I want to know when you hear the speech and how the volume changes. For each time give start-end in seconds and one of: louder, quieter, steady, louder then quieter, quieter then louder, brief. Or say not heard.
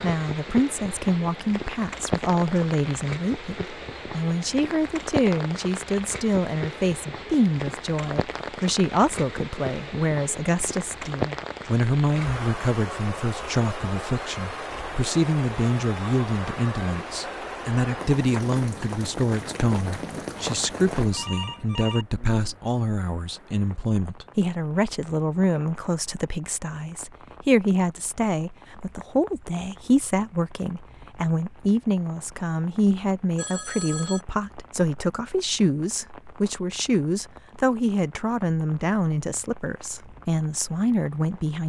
0.0-41.6 steady.